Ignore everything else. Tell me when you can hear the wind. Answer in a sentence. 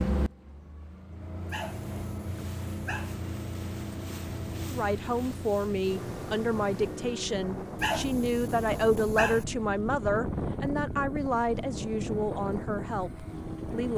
The wind can be heard from 4.3 to 13.9 s.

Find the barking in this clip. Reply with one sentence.
The barking can be heard from 1.4 to 3.1 s and from 7.8 to 9.4 s.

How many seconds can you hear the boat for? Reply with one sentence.
You can hear the boat for 14 seconds altogether.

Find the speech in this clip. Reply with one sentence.
The speech can be heard from 4.7 to 13.9 s.